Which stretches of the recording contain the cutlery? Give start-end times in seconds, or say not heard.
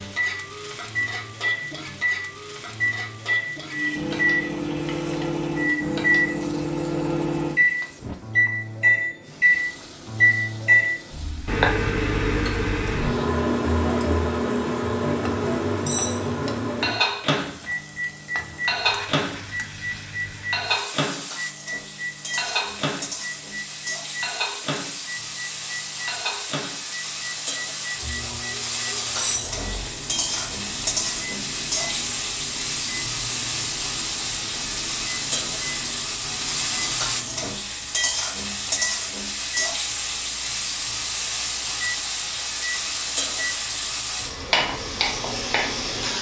15.8-16.2, 29.1-29.6.